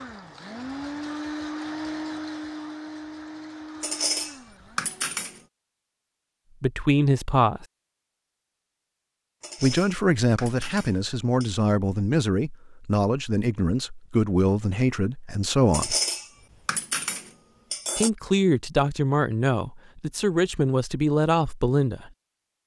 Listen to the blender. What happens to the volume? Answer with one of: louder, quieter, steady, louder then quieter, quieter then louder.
quieter.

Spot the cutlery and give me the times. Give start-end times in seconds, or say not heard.
3.8-5.4, 9.4-11.6, 15.7-18.1.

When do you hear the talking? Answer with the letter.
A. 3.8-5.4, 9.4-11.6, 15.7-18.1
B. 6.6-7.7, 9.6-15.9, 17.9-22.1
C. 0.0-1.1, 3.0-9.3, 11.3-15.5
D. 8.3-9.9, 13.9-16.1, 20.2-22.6
B.